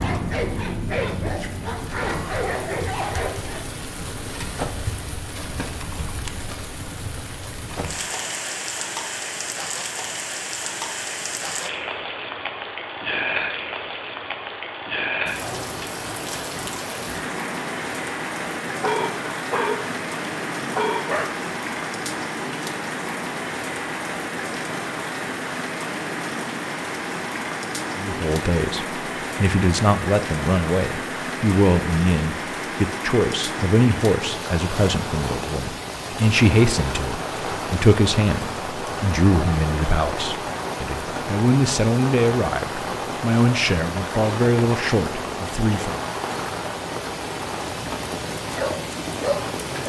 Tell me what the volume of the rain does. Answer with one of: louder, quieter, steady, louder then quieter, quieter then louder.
steady.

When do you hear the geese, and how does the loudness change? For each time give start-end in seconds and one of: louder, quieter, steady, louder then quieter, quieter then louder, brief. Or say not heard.
not heard.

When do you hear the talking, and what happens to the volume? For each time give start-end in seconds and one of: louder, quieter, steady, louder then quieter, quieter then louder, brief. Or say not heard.
27.9-46.0 steady.